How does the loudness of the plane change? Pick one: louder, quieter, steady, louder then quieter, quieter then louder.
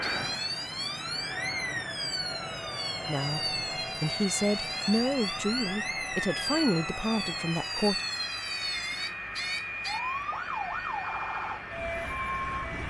steady.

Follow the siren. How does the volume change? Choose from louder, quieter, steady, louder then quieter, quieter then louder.
steady.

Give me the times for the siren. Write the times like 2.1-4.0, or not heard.
0.0-12.8.